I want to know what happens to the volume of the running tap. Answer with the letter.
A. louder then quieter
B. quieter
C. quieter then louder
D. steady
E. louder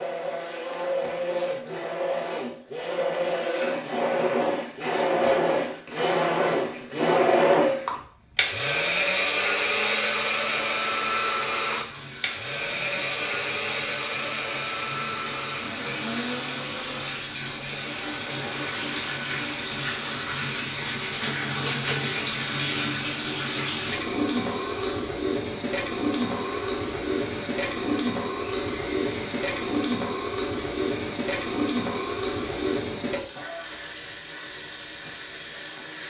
E.